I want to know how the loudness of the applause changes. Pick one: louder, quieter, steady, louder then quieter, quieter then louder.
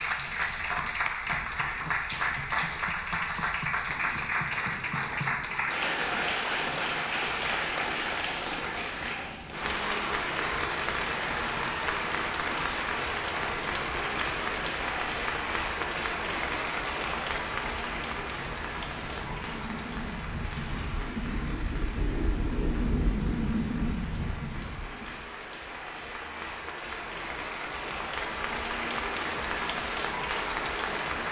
quieter then louder.